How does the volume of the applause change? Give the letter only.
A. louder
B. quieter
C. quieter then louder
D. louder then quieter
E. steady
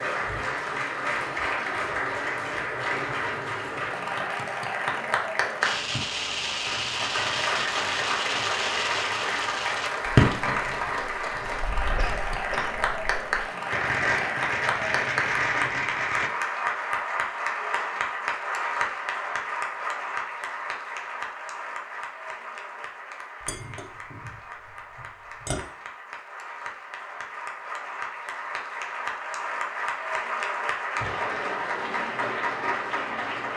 C.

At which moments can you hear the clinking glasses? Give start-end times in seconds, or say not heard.
23.4-25.6.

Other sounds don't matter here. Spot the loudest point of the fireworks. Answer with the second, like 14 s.
10 s.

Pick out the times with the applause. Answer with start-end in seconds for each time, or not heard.
0.0-33.5.